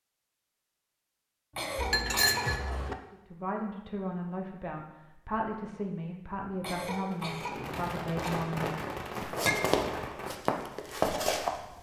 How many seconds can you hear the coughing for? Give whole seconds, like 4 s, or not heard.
3 s.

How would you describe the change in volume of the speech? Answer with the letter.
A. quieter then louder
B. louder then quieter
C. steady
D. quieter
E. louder
C.